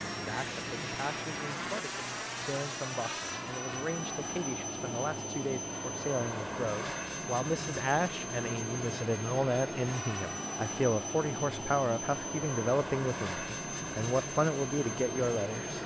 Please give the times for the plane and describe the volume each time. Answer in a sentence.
The plane can be heard from 0.0 to 15.8 s, at a steady volume.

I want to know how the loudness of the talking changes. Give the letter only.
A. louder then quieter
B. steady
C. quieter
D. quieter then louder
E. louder
E.